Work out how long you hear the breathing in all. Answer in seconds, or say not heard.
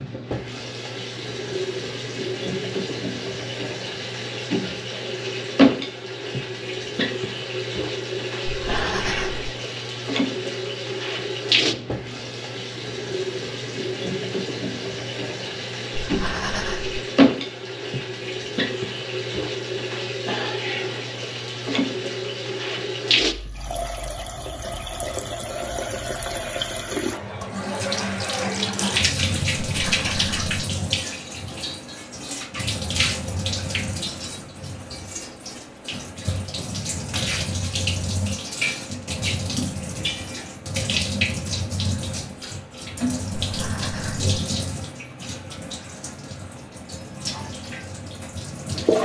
4 s.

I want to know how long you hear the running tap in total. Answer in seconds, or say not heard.
49 s.